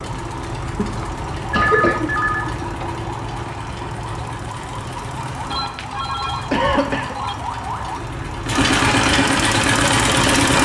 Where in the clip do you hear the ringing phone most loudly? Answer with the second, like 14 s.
2 s.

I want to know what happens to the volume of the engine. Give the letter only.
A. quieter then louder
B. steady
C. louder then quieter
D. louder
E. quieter
D.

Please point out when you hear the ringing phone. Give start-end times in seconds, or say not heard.
1.5-2.5, 5.5-7.3.